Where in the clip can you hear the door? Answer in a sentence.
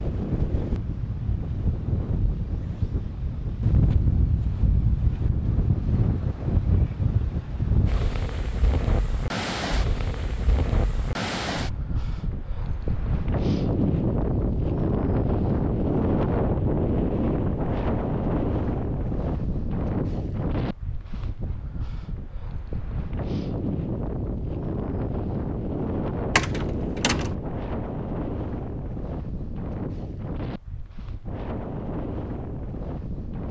You can hear the door from 26.4 to 27.4 s.